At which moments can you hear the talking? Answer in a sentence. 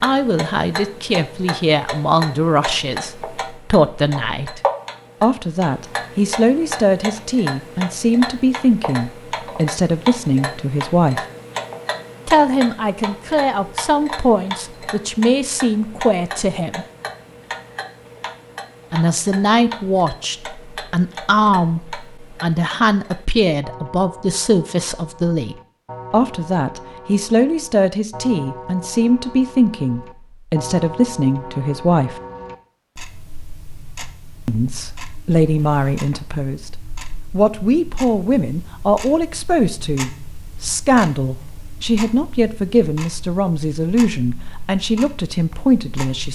You can hear the talking from 0.0 to 4.6 s, from 5.2 to 11.2 s, from 12.2 to 16.9 s, from 18.9 to 32.2 s, from 34.5 to 36.7 s and from 37.3 to 46.3 s.